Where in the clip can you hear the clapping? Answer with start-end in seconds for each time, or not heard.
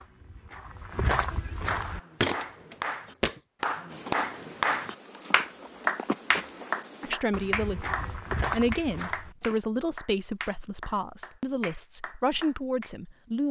1.8-12.9.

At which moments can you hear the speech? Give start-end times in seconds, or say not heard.
7.0-13.4.